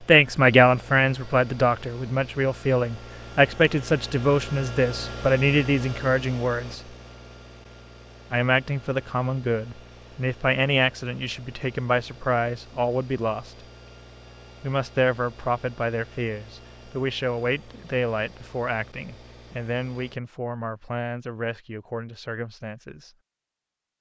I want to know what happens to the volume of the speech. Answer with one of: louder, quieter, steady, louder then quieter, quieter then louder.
quieter.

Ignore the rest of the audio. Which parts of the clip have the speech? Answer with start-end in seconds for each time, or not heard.
0.1-6.8, 8.3-13.6, 14.6-23.1.